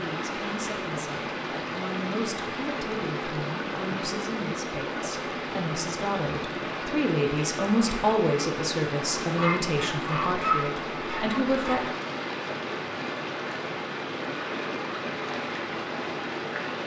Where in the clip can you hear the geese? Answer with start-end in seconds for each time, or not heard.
9.3-11.9.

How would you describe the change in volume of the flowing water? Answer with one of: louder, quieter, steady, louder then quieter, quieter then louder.
steady.